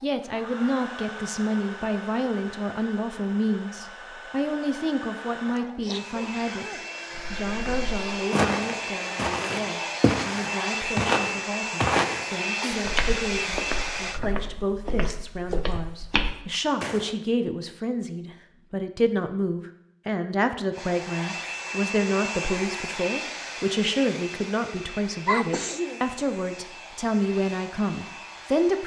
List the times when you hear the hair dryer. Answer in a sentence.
You can hear the hair dryer from 0.0 to 14.2 s and from 20.7 to 28.8 s.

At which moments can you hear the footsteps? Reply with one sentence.
You can hear the footsteps from 7.2 to 17.1 s.